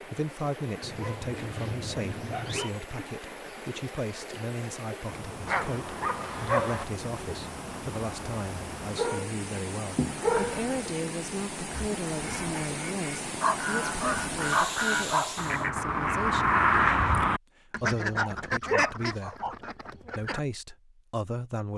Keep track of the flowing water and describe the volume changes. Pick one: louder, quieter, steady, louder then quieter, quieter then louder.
louder.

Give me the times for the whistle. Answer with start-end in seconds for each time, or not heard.
not heard.